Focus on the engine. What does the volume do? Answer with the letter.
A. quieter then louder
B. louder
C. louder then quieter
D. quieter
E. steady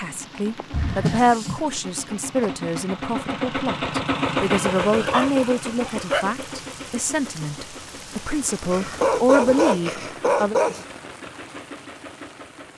C.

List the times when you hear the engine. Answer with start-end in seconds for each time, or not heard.
0.0-12.7.